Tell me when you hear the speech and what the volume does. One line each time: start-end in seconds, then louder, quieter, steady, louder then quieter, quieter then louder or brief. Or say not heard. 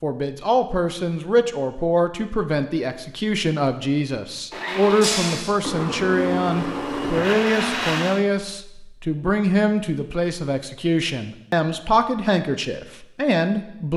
0.0-13.9 steady.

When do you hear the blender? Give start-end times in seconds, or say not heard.
4.5-8.2.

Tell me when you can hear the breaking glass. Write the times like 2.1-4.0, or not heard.
5.0-5.5.